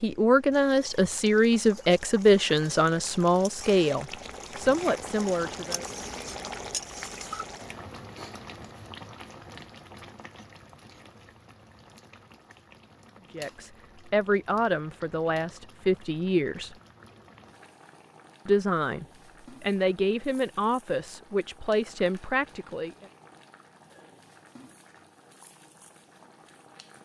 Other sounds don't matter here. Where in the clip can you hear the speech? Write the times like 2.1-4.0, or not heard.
0.0-5.8, 13.3-16.8, 18.4-22.9.